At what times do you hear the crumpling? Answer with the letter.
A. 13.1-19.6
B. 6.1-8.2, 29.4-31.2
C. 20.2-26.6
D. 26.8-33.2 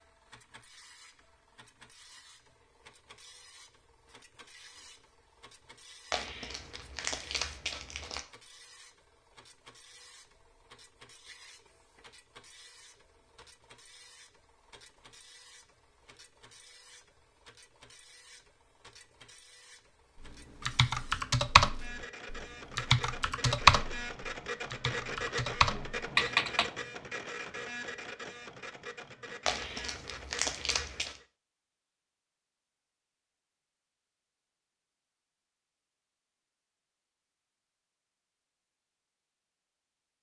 B.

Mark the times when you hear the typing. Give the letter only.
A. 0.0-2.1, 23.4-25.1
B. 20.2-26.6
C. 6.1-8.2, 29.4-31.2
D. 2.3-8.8
B.